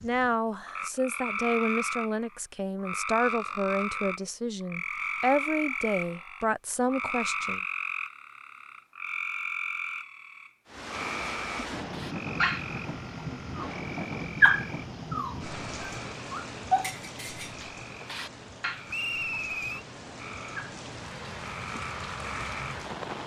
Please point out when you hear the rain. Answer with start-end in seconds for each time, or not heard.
10.7-23.2.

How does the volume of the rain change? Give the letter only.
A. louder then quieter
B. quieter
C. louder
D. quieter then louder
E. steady
D.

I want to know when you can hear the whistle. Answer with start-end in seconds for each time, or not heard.
18.9-19.9.